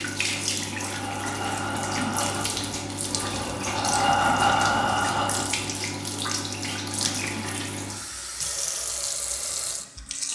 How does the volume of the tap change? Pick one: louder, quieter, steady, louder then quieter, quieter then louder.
steady.